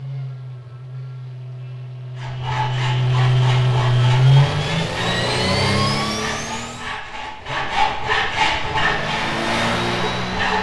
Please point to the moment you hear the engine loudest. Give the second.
4 s.